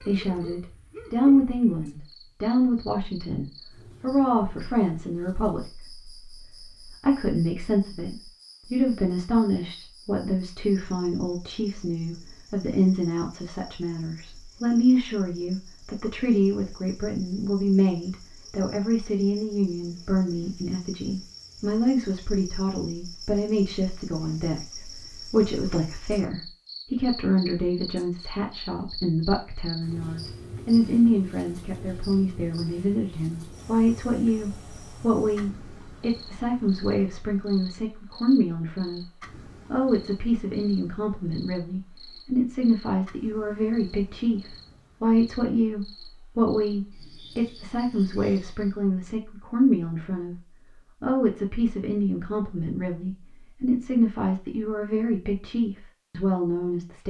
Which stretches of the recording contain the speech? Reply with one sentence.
The speech can be heard from 0.0 to 39.0 s, from 39.7 to 50.4 s and from 51.0 to 57.0 s.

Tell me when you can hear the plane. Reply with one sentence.
You can't hear the plane here.